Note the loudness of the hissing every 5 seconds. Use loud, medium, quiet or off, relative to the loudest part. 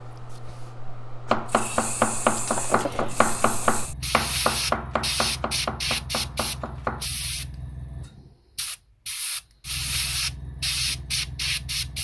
medium, loud, loud.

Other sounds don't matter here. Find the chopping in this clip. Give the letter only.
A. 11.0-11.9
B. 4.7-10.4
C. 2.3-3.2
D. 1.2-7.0
D.